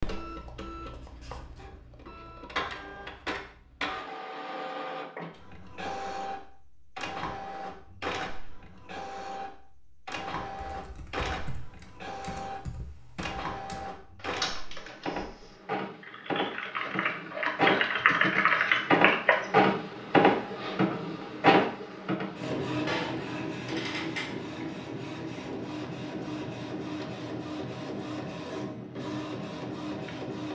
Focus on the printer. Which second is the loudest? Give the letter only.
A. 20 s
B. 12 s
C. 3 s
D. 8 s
A.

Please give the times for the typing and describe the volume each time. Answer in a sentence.
The typing can be heard from 10.4 to 19.4 s, getting louder.